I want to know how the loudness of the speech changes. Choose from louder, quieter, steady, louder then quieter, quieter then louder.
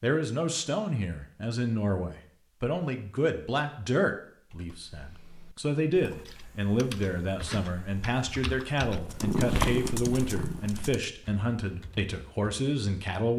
steady.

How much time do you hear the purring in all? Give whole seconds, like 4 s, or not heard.
2 s.